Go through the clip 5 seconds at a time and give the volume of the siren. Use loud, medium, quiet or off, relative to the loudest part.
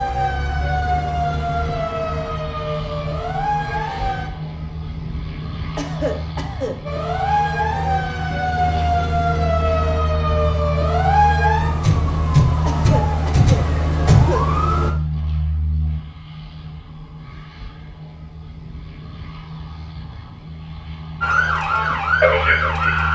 medium, loud, loud, off, loud.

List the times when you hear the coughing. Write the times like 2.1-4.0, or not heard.
5.8-6.8, 12.7-14.4.